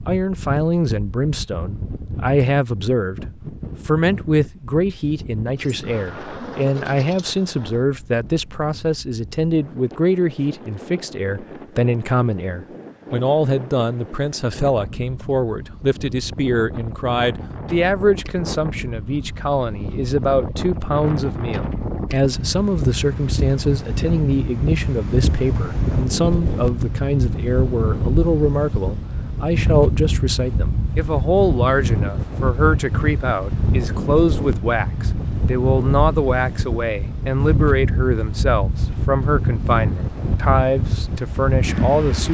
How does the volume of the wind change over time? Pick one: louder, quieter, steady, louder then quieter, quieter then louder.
louder.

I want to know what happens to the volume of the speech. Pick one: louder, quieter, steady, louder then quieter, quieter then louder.
steady.